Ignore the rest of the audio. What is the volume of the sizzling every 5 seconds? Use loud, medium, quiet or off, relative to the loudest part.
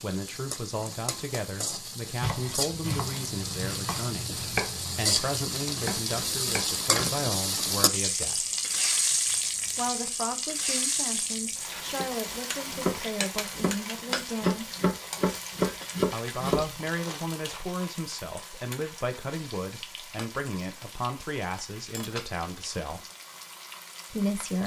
medium, loud, medium, quiet, quiet.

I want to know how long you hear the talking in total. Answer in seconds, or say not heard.
21 s.